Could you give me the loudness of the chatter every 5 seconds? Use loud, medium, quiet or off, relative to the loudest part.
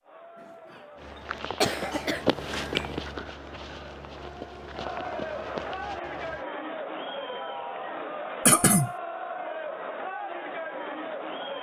medium, loud, loud.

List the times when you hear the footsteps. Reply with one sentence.
The footsteps can be heard from 0.9 to 6.5 s.